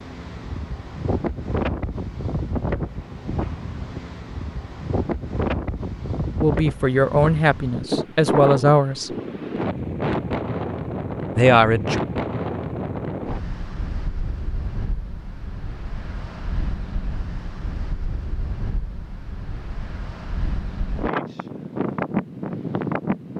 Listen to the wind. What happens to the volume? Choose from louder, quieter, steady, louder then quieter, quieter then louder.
quieter then louder.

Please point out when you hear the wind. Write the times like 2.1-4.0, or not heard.
0.0-23.3.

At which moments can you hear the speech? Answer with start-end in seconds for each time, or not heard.
6.4-9.2, 11.3-12.0.